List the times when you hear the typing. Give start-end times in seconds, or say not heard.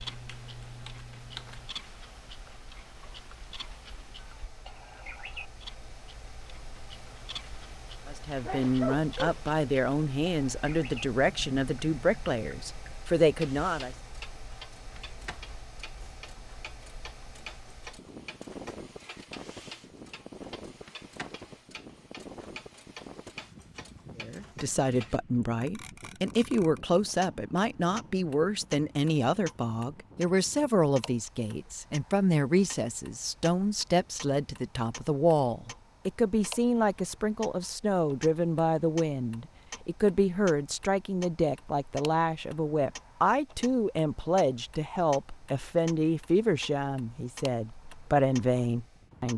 0.0-1.7.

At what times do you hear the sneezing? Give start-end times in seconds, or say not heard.
8.4-9.4.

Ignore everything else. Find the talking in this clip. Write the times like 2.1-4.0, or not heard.
8.1-13.9, 24.2-49.3.